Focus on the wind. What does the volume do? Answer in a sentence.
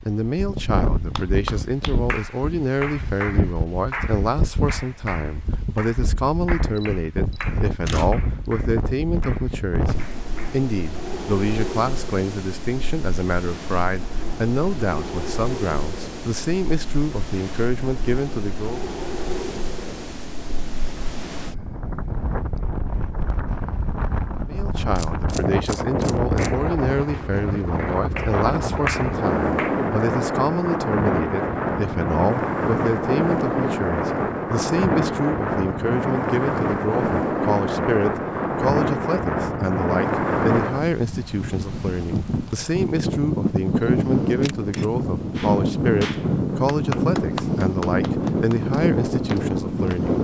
The volume of the wind goes up.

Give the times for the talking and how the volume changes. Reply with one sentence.
The talking can be heard from 0.1 to 18.9 s, at a steady volume; and from 24.4 to 50.1 s, at a steady volume.